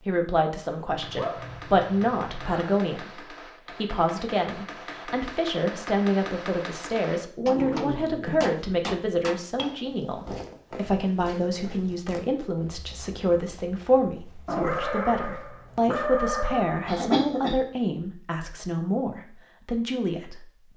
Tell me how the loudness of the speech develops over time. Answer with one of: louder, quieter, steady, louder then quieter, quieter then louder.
steady.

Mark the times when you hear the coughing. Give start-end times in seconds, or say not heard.
16.9-17.6.